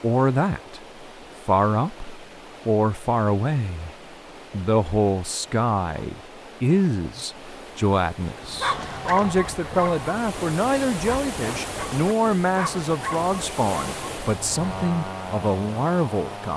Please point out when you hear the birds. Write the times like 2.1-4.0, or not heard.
not heard.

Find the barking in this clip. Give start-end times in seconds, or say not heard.
8.3-14.8.